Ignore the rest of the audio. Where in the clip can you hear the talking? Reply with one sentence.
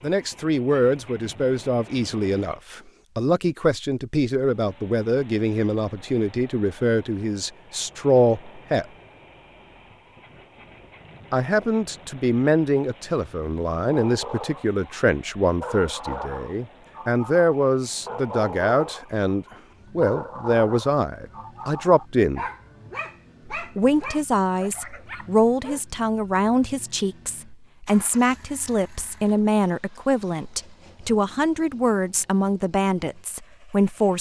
You can hear the talking from 0.0 to 8.8 s, from 11.3 to 22.4 s and from 23.6 to 34.1 s.